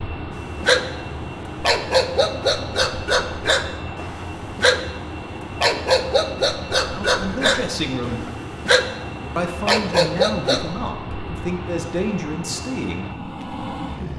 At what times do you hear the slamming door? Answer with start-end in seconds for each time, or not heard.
not heard.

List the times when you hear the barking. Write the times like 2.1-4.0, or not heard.
0.6-10.7.